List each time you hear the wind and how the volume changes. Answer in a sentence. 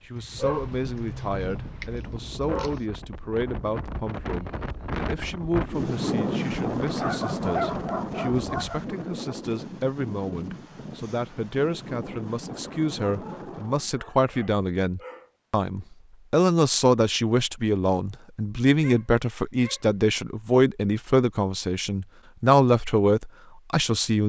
You can hear the wind from 0.0 to 13.9 s, getting louder then quieter.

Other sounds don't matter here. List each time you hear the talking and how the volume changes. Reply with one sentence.
You can hear the talking from 0.1 to 24.2 s, getting louder.